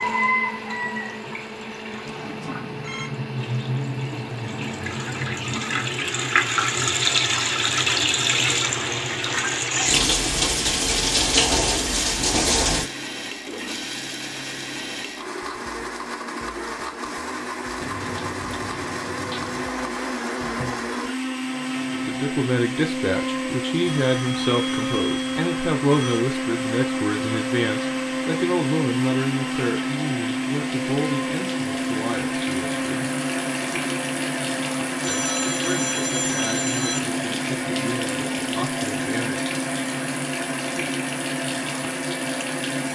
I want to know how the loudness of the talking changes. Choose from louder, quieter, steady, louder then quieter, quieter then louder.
quieter.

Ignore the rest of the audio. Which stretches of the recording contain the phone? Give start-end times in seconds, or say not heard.
2.0-3.1, 23.9-26.2, 35.0-37.0.